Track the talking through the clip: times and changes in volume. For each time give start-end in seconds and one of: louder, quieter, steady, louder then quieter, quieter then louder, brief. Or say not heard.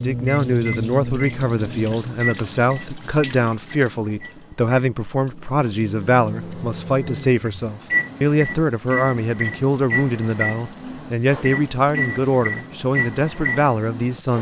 0.0-14.3 steady.